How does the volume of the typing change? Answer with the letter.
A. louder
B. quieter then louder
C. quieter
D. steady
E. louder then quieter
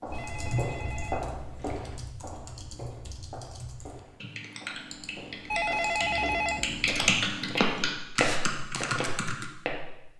B.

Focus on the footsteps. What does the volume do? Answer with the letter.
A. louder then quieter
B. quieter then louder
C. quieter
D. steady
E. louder
B.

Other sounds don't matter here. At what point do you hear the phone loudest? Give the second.
6 s.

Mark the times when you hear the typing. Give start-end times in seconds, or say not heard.
0.1-9.4.